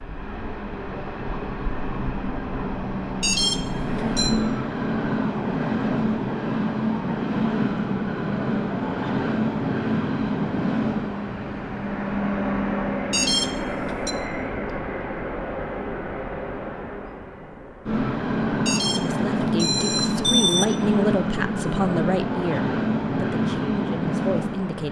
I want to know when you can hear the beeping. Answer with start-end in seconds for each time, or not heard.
3.2-4.3, 13.1-14.2, 18.6-20.6.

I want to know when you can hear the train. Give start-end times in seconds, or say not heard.
0.0-24.8.